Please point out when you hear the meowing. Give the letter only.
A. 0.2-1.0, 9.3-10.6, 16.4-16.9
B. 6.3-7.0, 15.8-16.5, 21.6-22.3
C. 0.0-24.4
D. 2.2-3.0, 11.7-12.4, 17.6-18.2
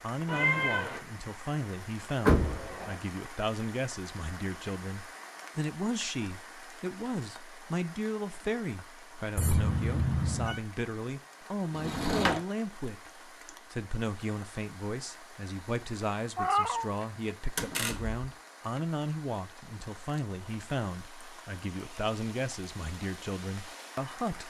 A.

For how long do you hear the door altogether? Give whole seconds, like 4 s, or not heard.
2 s.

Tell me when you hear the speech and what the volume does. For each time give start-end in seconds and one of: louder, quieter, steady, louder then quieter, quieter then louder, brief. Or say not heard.
0.0-24.4 steady.